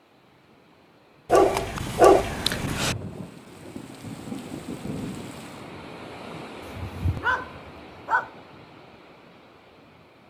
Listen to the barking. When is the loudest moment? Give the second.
2 s.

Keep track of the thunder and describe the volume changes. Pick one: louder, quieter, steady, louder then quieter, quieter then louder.
quieter then louder.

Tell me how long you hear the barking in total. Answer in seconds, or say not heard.
3 s.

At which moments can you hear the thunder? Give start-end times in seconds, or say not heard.
1.7-5.7.